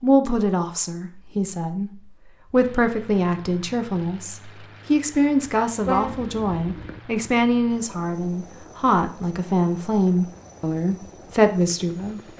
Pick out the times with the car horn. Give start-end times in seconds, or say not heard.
5.8-7.0.